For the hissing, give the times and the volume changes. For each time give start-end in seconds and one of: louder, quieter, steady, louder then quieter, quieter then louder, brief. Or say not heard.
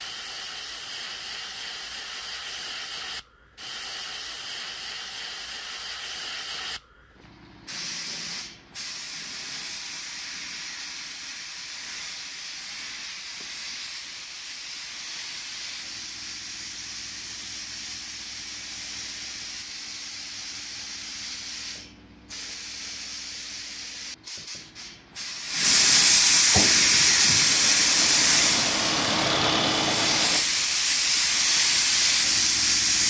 0.0-33.0 louder.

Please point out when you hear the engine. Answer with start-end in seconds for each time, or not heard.
26.5-30.4.